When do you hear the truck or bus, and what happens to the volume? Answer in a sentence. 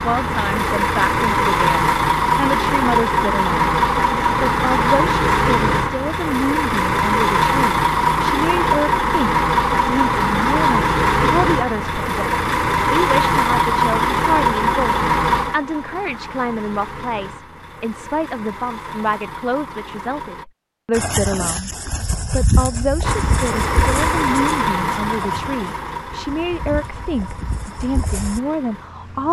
You can hear the truck or bus from 0.0 to 20.4 s, getting quieter; and from 23.0 to 29.2 s, getting quieter.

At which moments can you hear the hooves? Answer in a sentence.
You can hear the hooves from 20.9 to 28.4 s.